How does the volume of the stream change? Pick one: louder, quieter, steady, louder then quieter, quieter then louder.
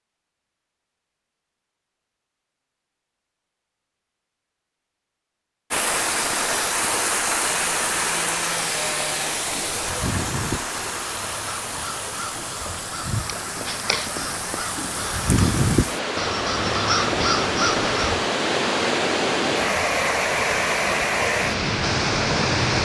quieter then louder.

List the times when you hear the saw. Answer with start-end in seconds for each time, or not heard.
7.4-9.4.